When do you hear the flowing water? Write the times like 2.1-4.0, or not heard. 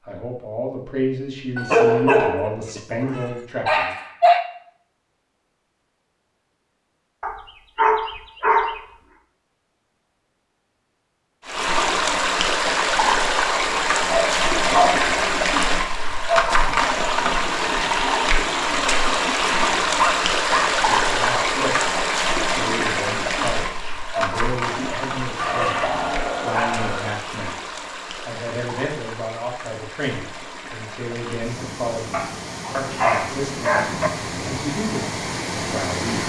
11.4-36.2.